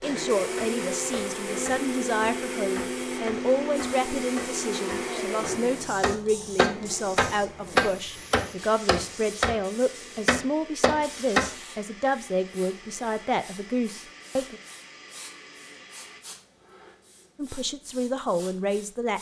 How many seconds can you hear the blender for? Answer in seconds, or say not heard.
16 s.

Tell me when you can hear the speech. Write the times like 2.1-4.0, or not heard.
0.0-14.6, 17.4-19.1.